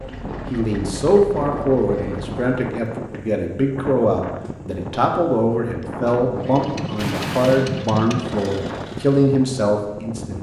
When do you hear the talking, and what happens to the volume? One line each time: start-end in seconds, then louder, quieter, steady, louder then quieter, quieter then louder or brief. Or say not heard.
0.5-10.3 steady.